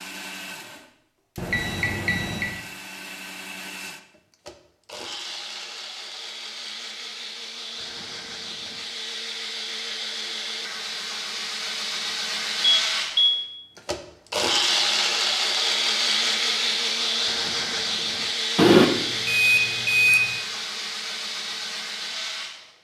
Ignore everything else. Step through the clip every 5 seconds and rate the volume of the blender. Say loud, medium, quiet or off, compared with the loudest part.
quiet, medium, loud, loud, medium.